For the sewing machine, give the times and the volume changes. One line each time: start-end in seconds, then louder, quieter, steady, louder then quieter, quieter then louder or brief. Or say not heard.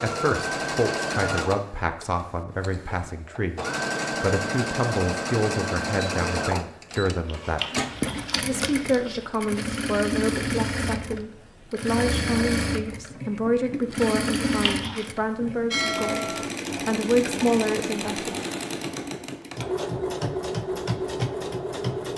0.0-22.1 steady.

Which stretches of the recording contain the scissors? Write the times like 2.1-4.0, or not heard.
7.2-9.2, 14.5-15.1.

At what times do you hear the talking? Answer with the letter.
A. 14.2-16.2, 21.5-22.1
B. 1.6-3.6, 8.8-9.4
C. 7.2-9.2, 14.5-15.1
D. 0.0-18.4
D.